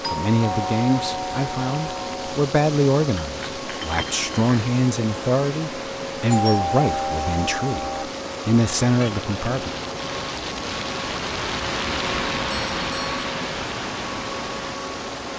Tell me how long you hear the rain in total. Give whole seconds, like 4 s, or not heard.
15 s.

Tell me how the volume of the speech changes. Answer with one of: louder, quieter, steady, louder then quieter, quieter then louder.
steady.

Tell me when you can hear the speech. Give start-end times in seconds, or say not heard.
0.1-9.7.